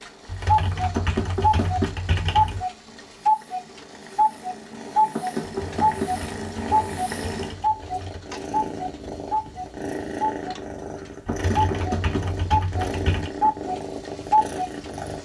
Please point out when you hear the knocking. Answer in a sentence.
The knocking can be heard from 0.9 to 1.9 s, from 5.2 to 6.2 s and from 11.2 to 12.3 s.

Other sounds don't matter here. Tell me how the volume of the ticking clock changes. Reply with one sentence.
The volume of the ticking clock goes down, then up.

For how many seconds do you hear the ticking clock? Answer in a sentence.
You can hear the ticking clock for 15 seconds altogether.